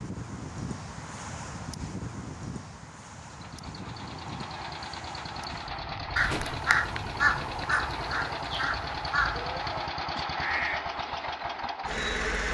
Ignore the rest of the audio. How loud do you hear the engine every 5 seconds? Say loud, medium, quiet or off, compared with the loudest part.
medium, loud, loud.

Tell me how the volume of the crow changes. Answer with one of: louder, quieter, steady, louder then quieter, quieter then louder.
quieter.